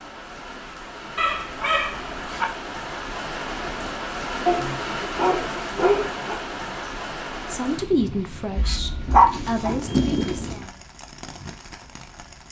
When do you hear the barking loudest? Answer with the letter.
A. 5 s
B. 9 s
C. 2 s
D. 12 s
B.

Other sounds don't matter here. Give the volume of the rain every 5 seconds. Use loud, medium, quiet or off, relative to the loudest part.
loud, loud, medium.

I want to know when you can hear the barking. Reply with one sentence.
You can hear the barking from 1.1 to 2.5 s, from 4.5 to 6.3 s and from 8.6 to 10.7 s.